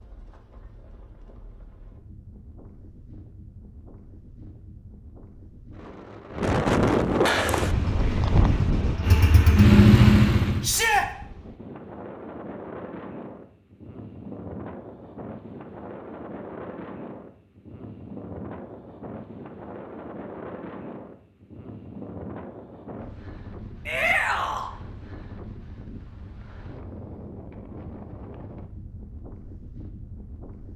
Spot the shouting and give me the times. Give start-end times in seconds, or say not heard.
10.6-11.1, 23.9-24.7.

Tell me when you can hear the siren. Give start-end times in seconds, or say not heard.
not heard.